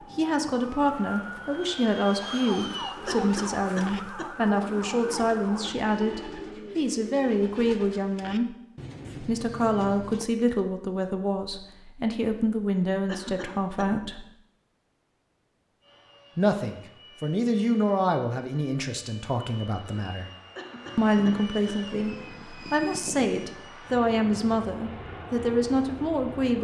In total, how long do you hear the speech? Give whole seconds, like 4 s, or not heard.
23 s.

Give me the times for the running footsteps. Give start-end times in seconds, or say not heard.
not heard.